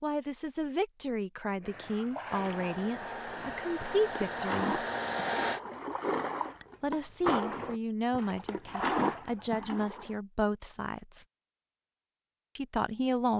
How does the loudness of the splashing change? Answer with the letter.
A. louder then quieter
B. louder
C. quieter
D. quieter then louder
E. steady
B.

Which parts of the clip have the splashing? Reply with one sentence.
You can hear the splashing from 1.5 to 10.1 s.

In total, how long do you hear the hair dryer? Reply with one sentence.
You can hear the hair dryer for 3 seconds altogether.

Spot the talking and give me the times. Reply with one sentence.
You can hear the talking from 0.0 to 4.8 s, from 6.8 to 11.2 s and from 12.6 to 13.3 s.